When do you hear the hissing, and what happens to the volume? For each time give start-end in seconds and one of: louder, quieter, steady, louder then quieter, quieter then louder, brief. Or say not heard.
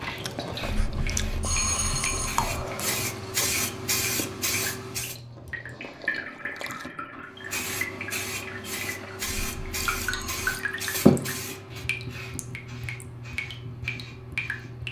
0.0-5.2 louder
7.3-14.8 louder then quieter.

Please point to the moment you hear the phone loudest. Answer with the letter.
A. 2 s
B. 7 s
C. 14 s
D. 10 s
A.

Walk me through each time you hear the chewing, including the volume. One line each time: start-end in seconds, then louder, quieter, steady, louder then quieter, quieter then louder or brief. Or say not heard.
0.0-6.9 quieter.